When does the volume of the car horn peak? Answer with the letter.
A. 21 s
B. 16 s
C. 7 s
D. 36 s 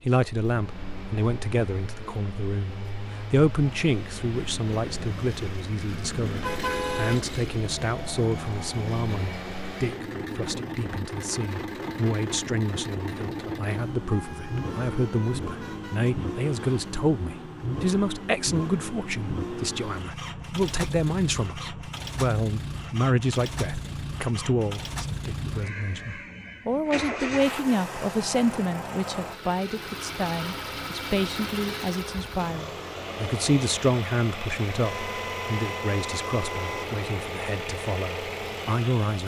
C.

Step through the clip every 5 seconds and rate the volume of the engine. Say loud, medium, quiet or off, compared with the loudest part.
medium, loud, loud, loud, loud, loud, loud, loud.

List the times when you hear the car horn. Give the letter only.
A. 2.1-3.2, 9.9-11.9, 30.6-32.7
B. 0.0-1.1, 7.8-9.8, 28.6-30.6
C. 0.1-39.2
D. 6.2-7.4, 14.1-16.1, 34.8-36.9
D.